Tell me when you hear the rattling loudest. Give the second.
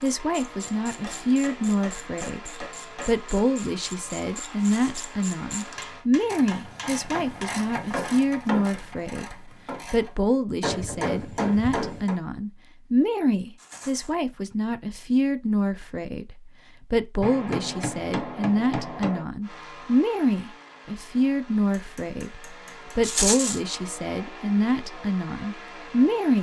23 s.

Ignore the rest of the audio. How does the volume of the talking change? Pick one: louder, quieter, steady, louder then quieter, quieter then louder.
steady.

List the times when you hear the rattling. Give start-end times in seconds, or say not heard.
4.6-5.0, 13.6-14.2, 23.0-23.6.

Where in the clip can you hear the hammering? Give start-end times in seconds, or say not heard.
0.8-3.2, 5.5-7.7, 10.6-12.2, 17.2-19.2, 21.8-23.1.